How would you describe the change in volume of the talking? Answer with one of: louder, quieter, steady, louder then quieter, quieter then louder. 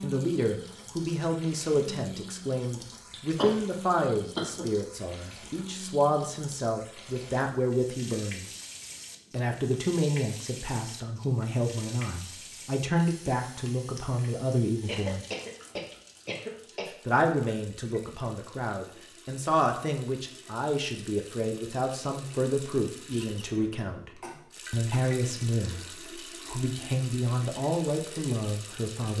steady.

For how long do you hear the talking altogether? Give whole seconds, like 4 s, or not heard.
26 s.